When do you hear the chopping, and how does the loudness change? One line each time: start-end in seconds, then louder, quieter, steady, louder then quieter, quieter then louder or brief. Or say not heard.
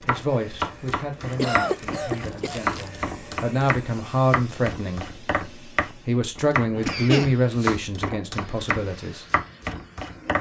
0.0-10.3 steady.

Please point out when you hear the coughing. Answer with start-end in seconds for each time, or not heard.
1.3-2.9, 6.8-7.8.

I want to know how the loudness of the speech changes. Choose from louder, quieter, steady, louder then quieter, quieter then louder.
louder then quieter.